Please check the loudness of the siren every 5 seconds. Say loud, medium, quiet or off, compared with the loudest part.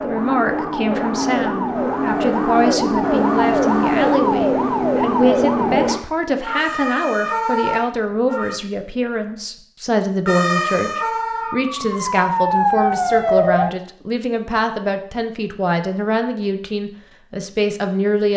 loud, loud, loud, off.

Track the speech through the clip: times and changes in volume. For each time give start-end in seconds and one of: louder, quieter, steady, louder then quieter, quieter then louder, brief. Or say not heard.
0.0-18.3 steady.